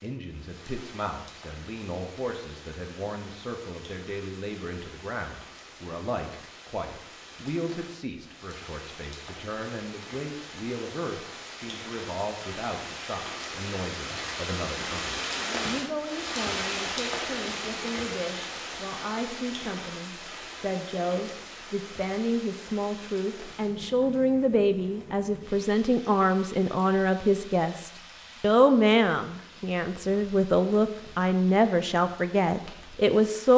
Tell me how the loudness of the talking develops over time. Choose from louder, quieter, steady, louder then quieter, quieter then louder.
louder.